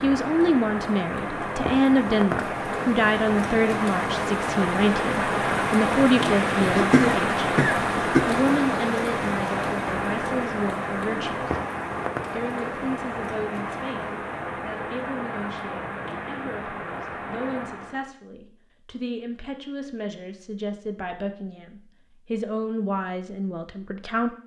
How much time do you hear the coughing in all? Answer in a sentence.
The coughing can be heard for 2 seconds in total.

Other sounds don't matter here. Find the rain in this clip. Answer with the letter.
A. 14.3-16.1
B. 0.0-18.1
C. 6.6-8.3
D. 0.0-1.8
B.